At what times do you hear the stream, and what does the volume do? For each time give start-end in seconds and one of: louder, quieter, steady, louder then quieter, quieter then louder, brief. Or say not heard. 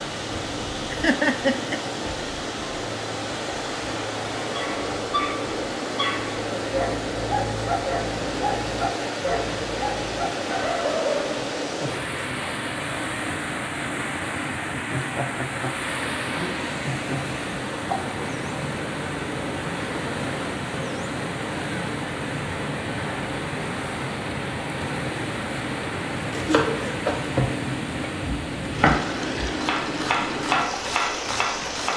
0.0-31.9 steady.